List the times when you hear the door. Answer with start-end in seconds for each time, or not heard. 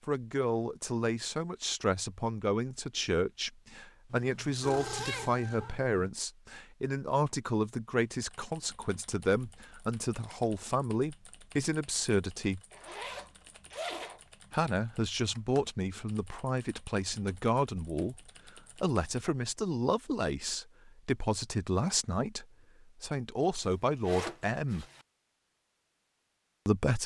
not heard.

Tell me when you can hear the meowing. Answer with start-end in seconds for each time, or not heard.
4.6-5.8.